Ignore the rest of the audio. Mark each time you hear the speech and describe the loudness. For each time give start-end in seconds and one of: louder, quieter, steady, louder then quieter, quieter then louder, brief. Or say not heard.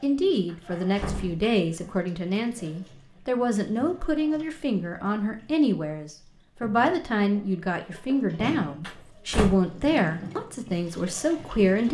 0.0-11.8 steady.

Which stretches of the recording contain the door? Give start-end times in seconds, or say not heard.
0.5-1.9, 8.8-9.6.